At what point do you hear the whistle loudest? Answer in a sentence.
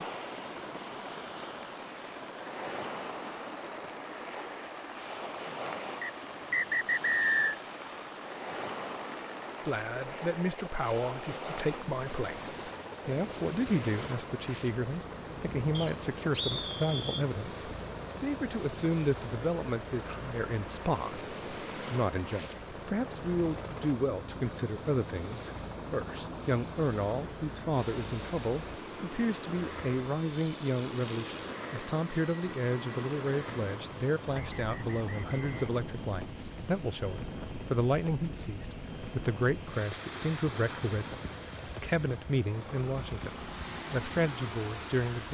The volume of the whistle peaks at 7 seconds.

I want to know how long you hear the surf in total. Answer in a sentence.
The surf can be heard for 45 seconds in total.